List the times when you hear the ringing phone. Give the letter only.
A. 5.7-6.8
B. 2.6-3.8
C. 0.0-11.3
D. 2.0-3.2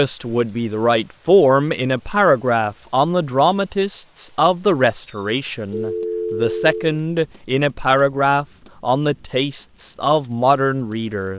A.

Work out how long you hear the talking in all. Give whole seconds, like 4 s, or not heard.
11 s.